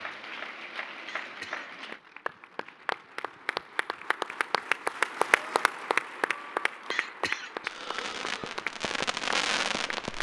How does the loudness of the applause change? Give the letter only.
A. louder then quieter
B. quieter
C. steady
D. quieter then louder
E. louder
A.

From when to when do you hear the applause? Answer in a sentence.
You can hear the applause from 0.0 to 10.1 s.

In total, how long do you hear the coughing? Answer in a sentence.
You can hear the coughing for 2 seconds altogether.